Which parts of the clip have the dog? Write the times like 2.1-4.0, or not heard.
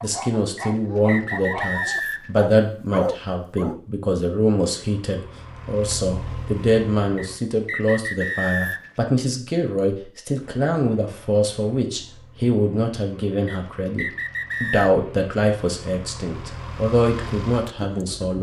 0.0-3.8.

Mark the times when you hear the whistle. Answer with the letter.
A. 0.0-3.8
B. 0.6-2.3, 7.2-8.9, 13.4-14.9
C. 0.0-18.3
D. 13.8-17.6
B.